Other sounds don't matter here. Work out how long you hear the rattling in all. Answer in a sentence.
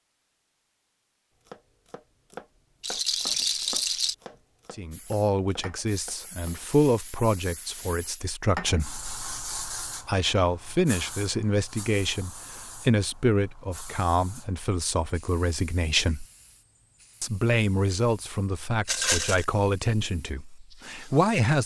You can hear the rattling for 2 seconds altogether.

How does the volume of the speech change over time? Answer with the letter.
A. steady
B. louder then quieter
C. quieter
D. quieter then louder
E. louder
A.